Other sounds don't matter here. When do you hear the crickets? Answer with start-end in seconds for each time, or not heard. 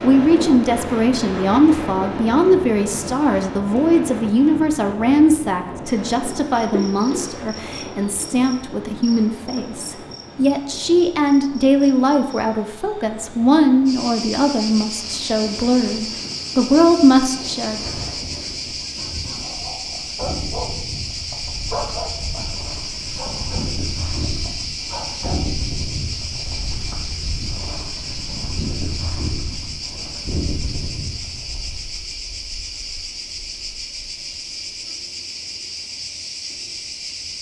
5.9-37.3.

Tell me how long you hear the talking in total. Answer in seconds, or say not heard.
18 s.